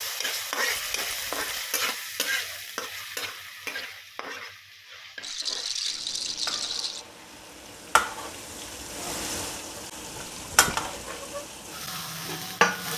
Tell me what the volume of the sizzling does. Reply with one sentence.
The volume of the sizzling goes down, then up.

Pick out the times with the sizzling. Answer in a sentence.
You can hear the sizzling from 0.0 to 12.9 s.